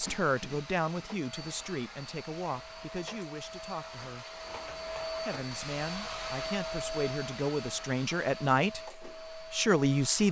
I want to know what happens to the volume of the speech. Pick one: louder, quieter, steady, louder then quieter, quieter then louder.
quieter then louder.